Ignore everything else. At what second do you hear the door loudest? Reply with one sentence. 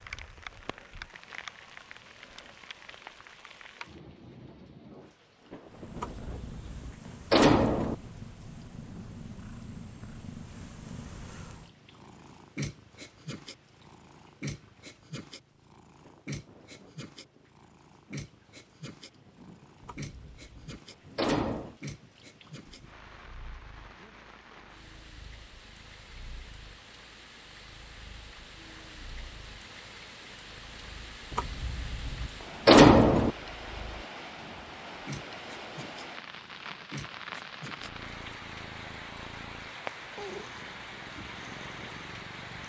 The volume of the door peaks at 33 seconds.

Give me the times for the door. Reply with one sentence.
You can hear the door from 6.0 to 8.0 s, from 19.9 to 21.8 s and from 31.3 to 33.3 s.